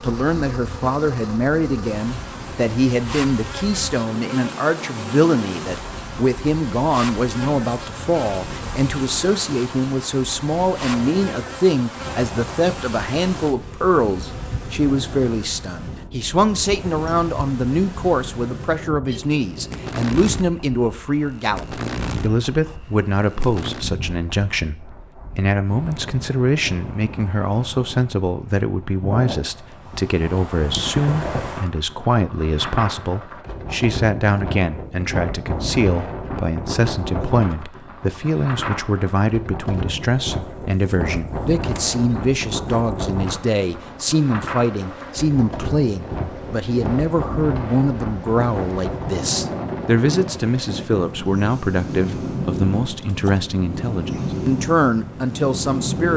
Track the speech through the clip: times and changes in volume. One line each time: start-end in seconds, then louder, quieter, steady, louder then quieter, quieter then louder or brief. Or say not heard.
0.0-56.1 steady.